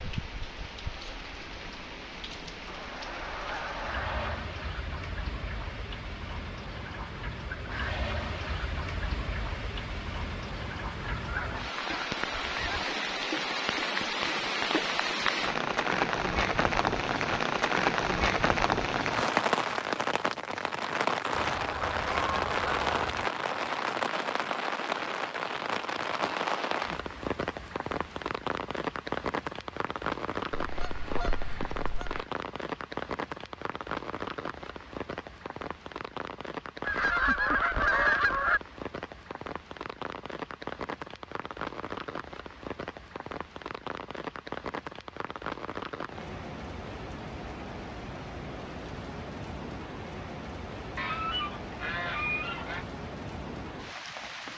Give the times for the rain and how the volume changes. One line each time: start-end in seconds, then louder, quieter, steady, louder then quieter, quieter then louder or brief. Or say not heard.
0.0-54.5 louder then quieter.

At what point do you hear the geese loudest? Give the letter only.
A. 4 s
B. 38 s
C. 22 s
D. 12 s
B.